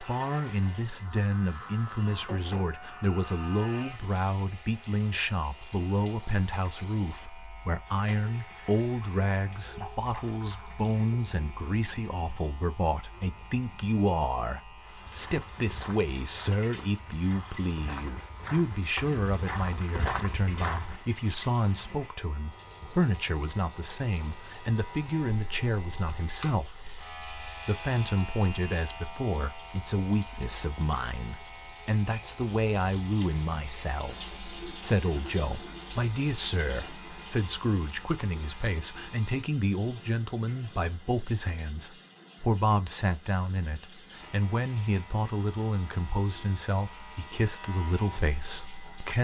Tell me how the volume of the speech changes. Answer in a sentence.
The volume of the speech stays about the same.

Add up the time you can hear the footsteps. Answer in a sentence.
You can hear the footsteps for 6 seconds altogether.